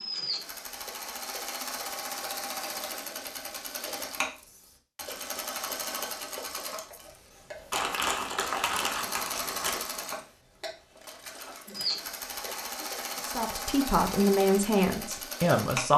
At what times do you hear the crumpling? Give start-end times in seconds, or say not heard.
7.7-9.8.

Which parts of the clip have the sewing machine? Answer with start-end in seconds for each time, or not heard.
0.0-15.9.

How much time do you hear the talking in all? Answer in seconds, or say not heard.
3 s.